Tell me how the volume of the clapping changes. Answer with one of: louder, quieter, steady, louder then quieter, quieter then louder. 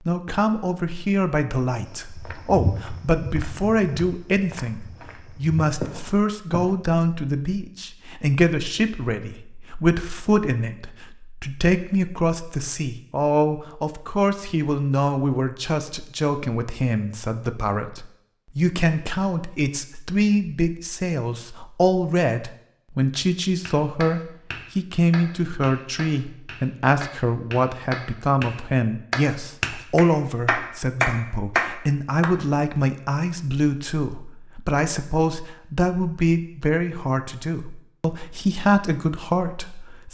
louder.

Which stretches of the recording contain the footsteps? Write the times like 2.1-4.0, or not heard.
1.9-6.8.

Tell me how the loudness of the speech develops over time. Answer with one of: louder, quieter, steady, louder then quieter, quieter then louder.
steady.